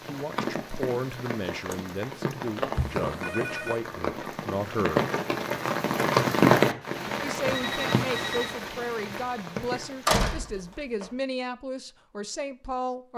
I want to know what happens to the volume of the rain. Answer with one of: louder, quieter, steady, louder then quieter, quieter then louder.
louder then quieter.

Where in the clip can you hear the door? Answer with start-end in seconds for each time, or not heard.
10.1-11.1.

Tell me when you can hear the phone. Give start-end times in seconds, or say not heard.
2.8-3.8, 7.5-8.6.